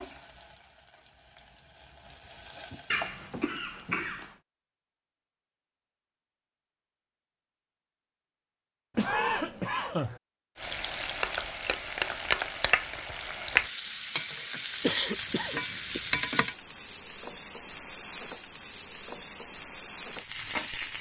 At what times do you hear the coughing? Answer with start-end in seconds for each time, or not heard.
2.9-4.3, 8.9-10.2, 14.8-16.1.